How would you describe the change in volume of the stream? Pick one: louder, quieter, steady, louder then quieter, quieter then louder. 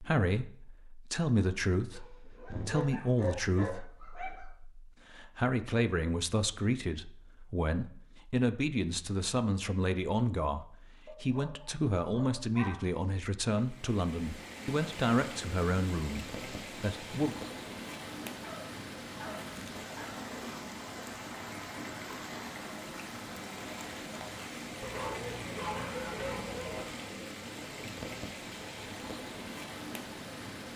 steady.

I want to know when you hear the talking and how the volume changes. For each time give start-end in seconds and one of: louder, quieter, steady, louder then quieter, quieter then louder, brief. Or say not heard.
0.0-17.4 steady.